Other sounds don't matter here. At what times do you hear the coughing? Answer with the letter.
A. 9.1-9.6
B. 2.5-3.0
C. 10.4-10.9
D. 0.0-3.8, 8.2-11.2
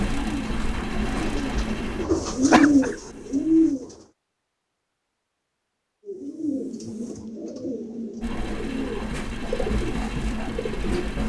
B.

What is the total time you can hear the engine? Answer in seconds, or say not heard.
7 s.